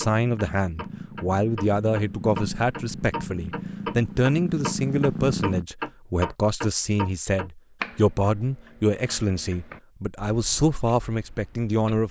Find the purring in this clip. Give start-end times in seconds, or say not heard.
0.2-5.7.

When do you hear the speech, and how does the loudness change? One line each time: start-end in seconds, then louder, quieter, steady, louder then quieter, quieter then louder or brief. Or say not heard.
0.0-12.0 steady.